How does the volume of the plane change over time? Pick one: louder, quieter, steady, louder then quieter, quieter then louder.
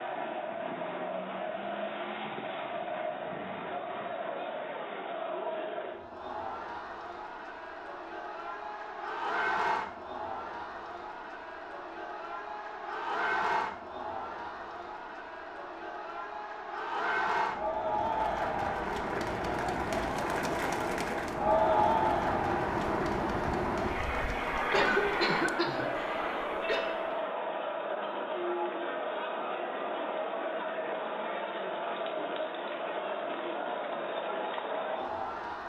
louder then quieter.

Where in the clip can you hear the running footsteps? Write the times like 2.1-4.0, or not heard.
not heard.